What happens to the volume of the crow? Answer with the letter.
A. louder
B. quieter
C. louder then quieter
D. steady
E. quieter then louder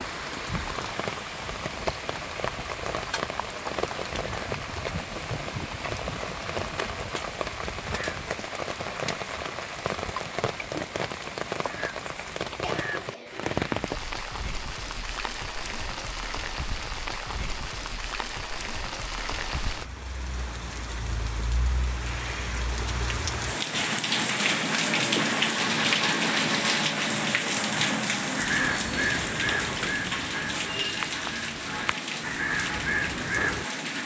E.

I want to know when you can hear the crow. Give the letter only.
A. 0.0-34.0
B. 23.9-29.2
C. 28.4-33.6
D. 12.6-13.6
C.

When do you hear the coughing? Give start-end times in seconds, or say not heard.
12.6-13.6.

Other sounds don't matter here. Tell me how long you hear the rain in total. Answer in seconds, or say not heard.
34 s.